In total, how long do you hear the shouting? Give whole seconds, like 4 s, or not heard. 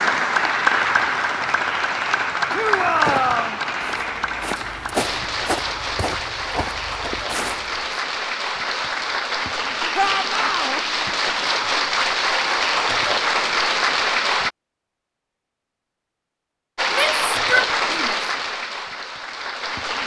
3 s.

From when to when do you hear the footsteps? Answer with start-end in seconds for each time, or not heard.
2.5-8.0.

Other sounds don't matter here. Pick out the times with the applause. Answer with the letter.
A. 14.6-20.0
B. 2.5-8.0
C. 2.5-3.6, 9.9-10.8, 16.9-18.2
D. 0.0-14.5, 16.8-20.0
D.